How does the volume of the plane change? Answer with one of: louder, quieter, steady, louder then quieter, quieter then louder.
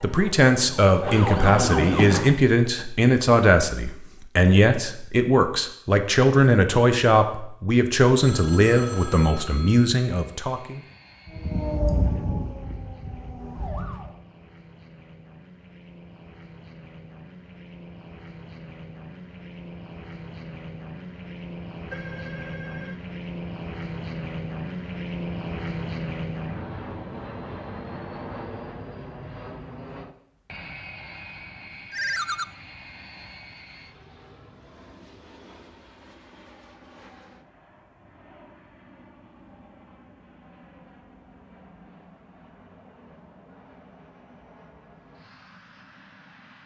louder then quieter.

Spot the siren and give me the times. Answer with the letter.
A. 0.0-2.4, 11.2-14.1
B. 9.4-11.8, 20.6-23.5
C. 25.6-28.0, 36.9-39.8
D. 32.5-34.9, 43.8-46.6
A.